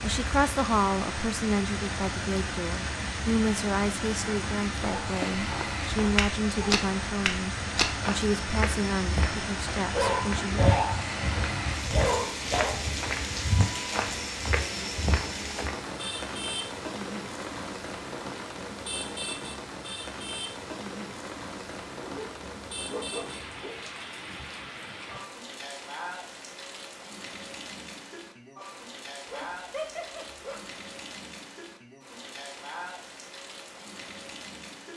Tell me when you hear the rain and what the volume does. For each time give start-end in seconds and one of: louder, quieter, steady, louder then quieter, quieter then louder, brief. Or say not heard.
0.0-34.9 quieter.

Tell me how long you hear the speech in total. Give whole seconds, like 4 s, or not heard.
11 s.